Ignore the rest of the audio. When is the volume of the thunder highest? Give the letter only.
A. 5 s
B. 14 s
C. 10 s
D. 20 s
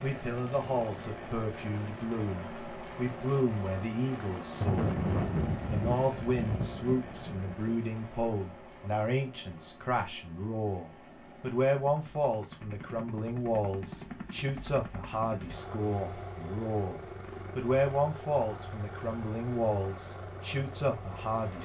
A.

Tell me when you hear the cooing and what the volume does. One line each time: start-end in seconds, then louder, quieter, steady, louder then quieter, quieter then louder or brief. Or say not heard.
not heard.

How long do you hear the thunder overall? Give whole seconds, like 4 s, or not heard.
3 s.